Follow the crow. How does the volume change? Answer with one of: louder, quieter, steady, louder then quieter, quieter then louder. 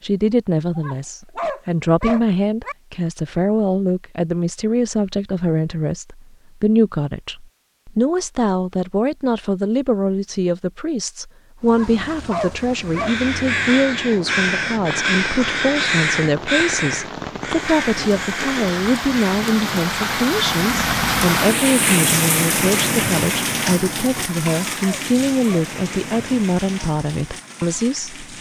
quieter.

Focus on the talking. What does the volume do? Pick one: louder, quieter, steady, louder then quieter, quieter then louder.
steady.